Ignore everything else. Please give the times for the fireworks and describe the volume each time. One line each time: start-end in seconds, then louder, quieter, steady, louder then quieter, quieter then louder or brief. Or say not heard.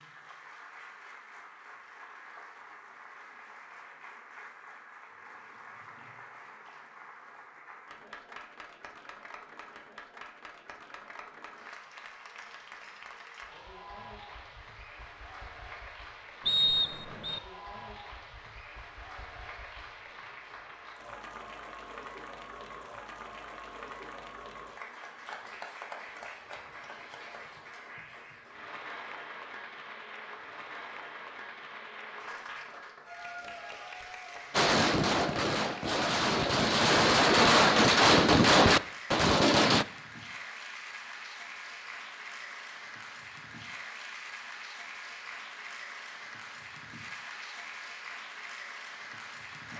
34.5-39.9 louder.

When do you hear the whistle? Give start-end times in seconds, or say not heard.
16.4-17.4.